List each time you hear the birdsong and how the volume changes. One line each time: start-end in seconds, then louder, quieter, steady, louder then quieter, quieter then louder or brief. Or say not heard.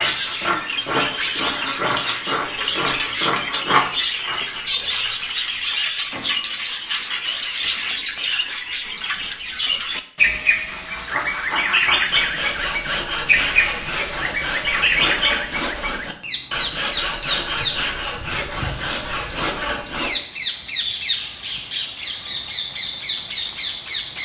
0.0-24.2 steady.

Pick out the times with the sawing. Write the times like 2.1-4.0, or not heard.
0.0-4.6, 10.7-20.1.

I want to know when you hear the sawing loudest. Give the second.
4 s.